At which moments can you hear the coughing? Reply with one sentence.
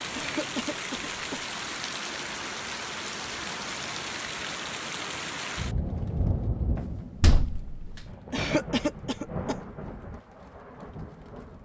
You can hear the coughing from 0.1 to 1.4 s and from 8.3 to 9.6 s.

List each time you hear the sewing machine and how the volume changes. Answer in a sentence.
You can't hear the sewing machine here.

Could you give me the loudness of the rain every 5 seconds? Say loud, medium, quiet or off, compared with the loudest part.
loud, loud, medium.